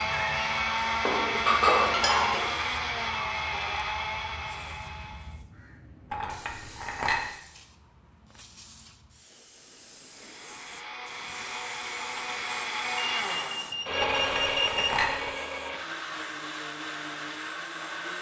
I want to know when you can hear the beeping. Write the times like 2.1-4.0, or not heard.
12.9-14.9.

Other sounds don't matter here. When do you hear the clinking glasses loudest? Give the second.
2 s.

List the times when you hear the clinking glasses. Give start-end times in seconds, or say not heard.
1.1-2.5, 6.1-7.2, 14.0-15.2.